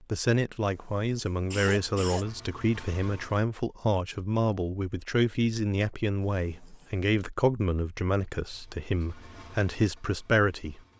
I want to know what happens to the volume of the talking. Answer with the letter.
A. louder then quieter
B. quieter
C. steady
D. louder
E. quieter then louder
C.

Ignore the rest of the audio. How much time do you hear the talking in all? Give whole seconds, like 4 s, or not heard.
11 s.